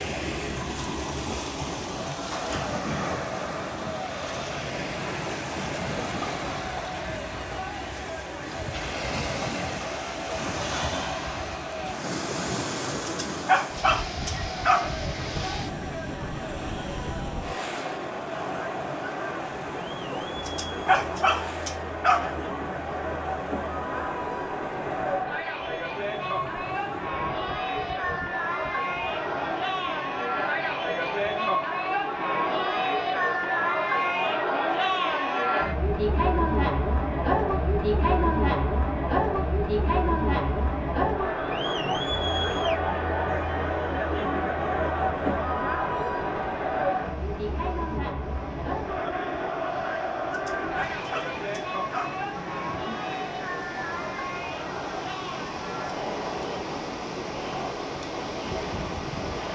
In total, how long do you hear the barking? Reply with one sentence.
The barking can be heard for 6 seconds in total.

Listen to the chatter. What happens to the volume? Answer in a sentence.
The loudness of the chatter goes up, then down.